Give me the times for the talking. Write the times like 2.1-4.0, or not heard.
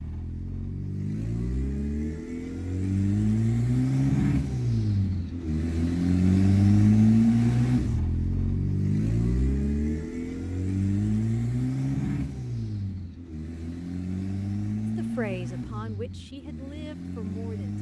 14.9-17.7.